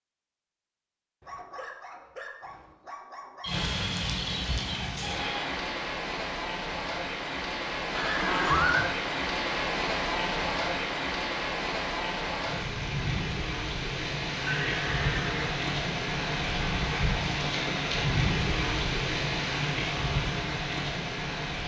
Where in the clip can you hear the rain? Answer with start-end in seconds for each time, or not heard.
3.5-21.6.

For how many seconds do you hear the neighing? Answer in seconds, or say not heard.
4 s.